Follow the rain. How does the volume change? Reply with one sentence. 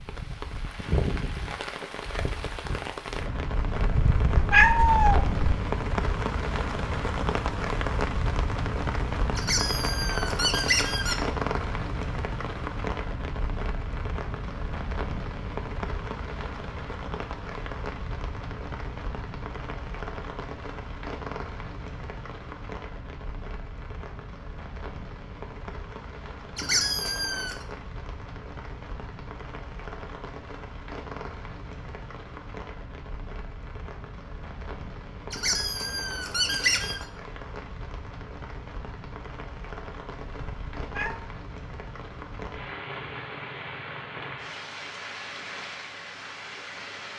The volume of the rain goes down.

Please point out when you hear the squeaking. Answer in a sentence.
The squeaking can be heard from 9.3 to 11.2 s, from 26.6 to 27.6 s and from 35.3 to 37.0 s.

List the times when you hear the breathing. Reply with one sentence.
The breathing can't be heard in this clip.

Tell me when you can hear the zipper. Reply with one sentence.
The zipper can't be heard in this clip.